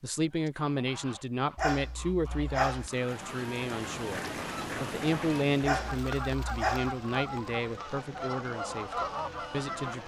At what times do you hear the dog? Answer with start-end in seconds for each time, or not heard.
1.6-2.9, 5.6-7.0.